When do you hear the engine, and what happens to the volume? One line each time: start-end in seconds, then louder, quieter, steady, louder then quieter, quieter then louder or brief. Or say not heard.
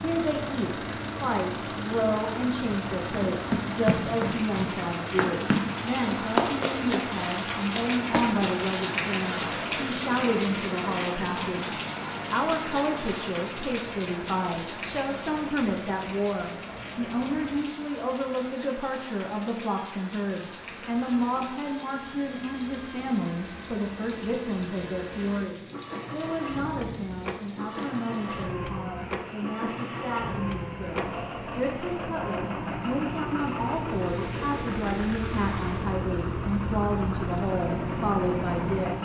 0.0-39.0 quieter then louder.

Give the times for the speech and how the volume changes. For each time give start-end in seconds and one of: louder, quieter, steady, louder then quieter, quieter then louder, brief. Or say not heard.
0.0-39.0 steady.